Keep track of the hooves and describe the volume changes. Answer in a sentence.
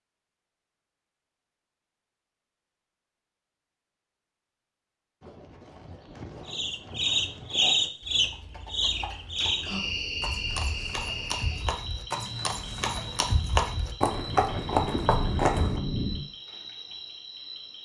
The loudness of the hooves goes up.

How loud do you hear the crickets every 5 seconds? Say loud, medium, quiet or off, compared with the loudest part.
off, loud, medium, quiet.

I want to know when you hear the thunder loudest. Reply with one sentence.
The loudest moment of the thunder is at 16 seconds.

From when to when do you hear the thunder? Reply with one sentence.
The thunder can be heard from 14.2 to 16.2 s.